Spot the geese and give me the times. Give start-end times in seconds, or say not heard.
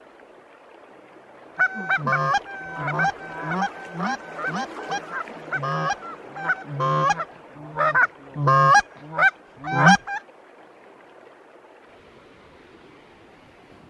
1.6-10.2.